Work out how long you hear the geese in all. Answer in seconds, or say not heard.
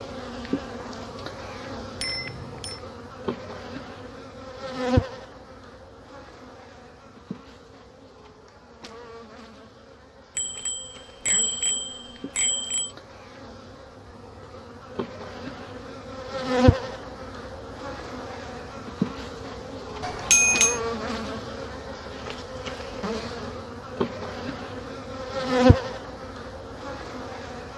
not heard.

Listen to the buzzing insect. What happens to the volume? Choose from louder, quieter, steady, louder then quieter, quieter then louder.
quieter then louder.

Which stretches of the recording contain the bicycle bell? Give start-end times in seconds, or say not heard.
2.0-2.8, 10.3-12.9, 20.0-20.8.